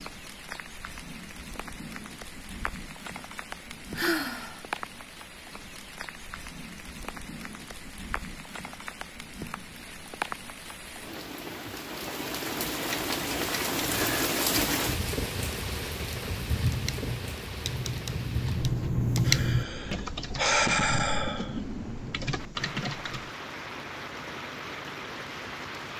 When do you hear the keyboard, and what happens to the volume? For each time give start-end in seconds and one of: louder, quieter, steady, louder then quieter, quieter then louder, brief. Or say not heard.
16.6-23.3 louder then quieter.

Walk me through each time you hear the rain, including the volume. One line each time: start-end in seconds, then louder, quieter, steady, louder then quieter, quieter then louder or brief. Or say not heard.
0.0-25.9 louder then quieter.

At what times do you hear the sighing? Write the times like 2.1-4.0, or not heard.
4.0-4.6, 19.2-21.6.